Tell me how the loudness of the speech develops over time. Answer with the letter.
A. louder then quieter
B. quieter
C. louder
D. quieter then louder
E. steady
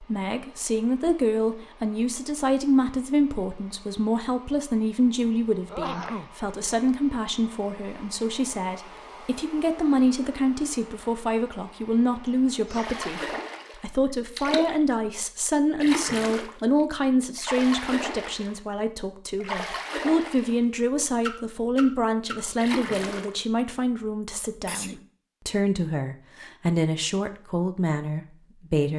E.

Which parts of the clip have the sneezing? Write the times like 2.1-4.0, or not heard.
5.7-6.3, 12.2-12.9, 24.6-25.1.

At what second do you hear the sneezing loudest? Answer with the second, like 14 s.
6 s.